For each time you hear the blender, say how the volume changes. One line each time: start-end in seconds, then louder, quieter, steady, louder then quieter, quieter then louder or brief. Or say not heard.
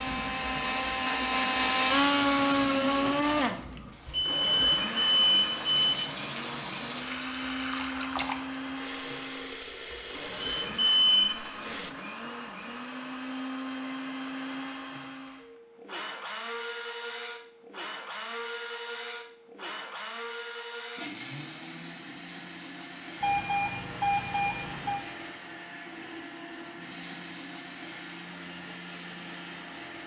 0.0-30.0 quieter.